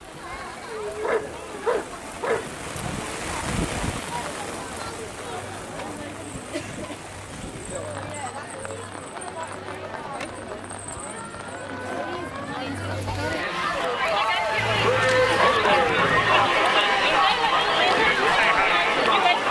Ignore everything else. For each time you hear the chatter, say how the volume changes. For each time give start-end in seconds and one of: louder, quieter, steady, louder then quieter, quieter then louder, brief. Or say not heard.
0.0-19.4 louder.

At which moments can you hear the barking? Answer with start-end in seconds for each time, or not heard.
1.0-2.5, 14.6-16.5.